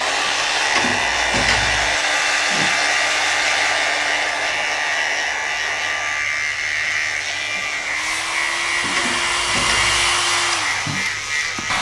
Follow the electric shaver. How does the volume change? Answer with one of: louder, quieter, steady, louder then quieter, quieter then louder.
steady.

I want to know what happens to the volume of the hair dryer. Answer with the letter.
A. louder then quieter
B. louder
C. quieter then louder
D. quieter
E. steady
C.